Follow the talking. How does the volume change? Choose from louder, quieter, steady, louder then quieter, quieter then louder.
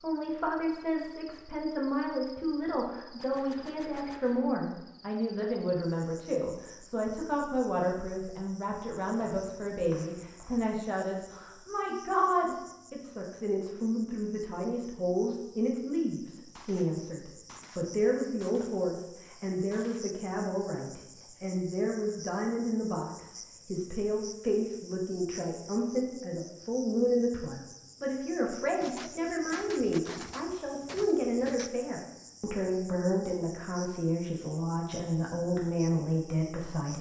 steady.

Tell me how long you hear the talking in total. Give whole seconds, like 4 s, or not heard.
37 s.